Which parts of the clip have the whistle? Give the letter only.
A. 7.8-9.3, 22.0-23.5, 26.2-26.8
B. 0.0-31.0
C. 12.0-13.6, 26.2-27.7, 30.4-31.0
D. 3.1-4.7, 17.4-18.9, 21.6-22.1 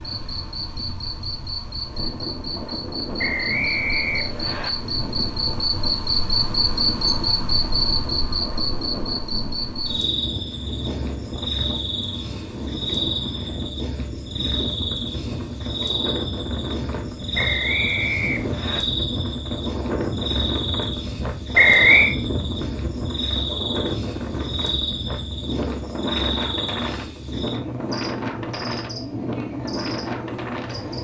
D.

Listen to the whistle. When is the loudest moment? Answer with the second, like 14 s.
22 s.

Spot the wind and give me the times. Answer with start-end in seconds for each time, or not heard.
0.0-31.0.